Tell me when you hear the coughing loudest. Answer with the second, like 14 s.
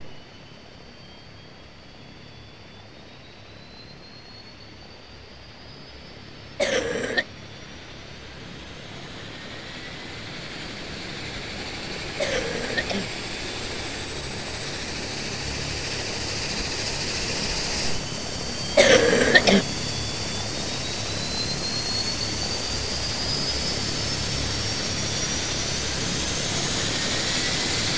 19 s.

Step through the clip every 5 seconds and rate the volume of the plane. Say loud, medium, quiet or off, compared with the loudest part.
quiet, quiet, medium, loud, loud, loud.